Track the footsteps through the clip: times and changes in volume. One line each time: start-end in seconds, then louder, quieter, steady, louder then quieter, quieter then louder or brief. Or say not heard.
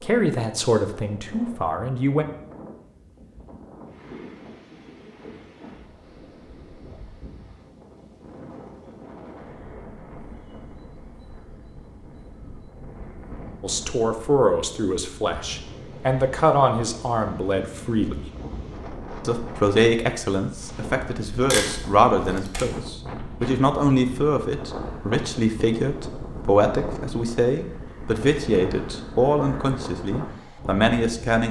not heard.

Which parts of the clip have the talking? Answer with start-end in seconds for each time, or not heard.
0.0-2.2, 13.6-18.3, 19.2-31.4.